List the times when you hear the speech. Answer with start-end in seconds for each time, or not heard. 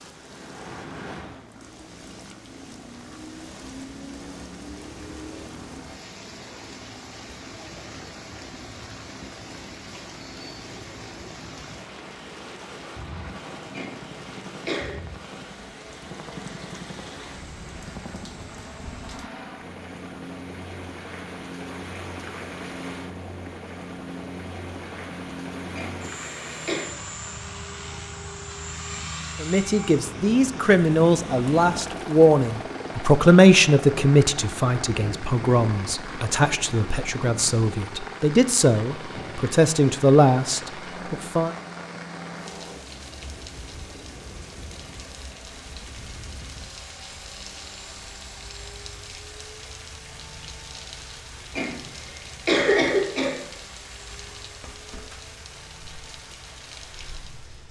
29.4-41.5.